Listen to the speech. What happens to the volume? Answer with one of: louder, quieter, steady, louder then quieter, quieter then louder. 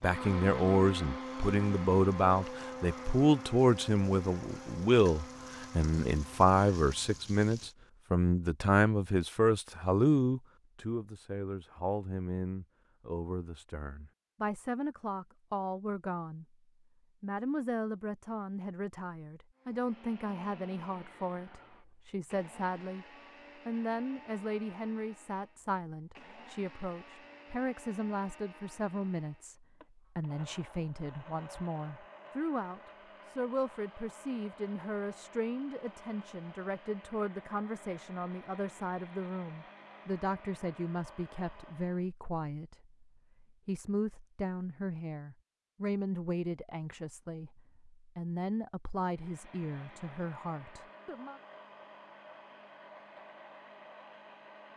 quieter.